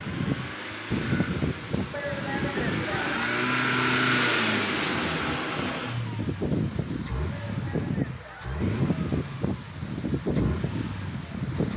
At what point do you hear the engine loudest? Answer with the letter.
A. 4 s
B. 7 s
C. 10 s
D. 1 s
A.